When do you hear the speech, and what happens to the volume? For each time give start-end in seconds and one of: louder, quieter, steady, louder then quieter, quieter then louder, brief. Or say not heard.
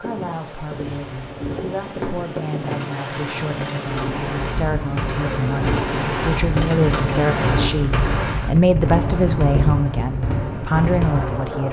0.0-11.6 louder.